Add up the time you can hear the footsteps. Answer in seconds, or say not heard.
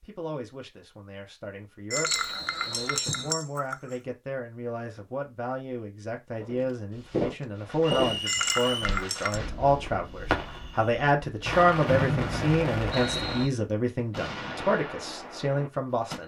5 s.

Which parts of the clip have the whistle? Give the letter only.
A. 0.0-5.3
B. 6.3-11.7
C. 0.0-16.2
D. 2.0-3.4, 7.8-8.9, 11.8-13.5
D.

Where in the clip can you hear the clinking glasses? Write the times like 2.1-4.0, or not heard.
1.9-4.0, 8.2-9.4.